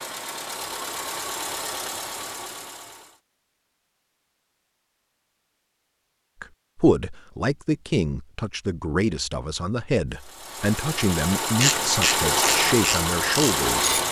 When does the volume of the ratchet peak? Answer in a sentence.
The volume of the ratchet peaks at 12 seconds.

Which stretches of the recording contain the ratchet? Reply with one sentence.
The ratchet can be heard from 11.6 to 14.0 s.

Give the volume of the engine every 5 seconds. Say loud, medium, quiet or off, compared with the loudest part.
medium, off, loud.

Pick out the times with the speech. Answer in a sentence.
You can hear the speech from 6.4 to 13.9 s.